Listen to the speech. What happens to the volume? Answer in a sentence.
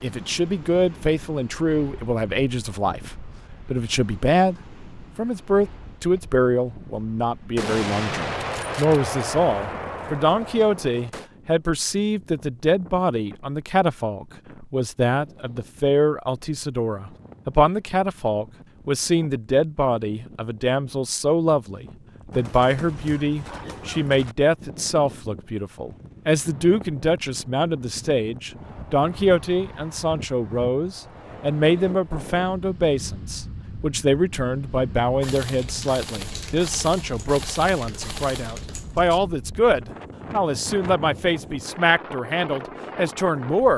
The volume of the speech stays about the same.